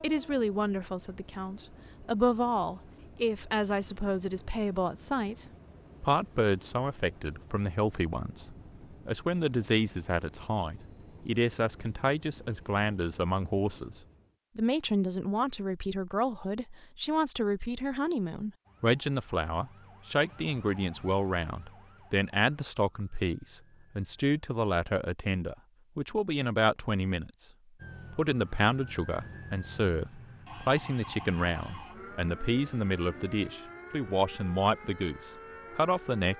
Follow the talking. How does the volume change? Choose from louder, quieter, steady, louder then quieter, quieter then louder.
steady.